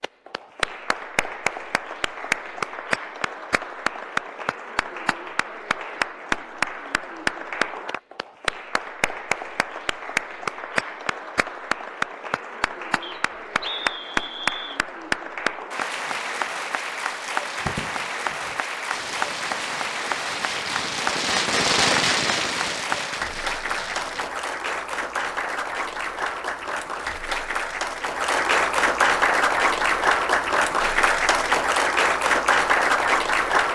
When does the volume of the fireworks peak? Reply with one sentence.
The loudest moment of the fireworks is at 22 seconds.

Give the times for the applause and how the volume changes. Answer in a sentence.
The applause can be heard from 0.0 to 33.7 s, getting louder.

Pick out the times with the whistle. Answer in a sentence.
The whistle can be heard from 13.0 to 14.8 s.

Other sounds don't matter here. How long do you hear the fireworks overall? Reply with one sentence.
The fireworks can be heard for 7 seconds in total.